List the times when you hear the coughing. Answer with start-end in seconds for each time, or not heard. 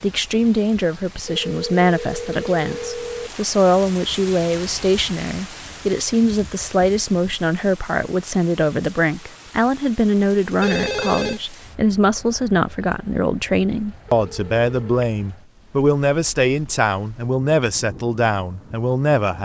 not heard.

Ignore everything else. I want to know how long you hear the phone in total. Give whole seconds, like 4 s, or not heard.
4 s.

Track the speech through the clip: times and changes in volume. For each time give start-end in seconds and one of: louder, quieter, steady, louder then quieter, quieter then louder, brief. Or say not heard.
0.0-19.4 steady.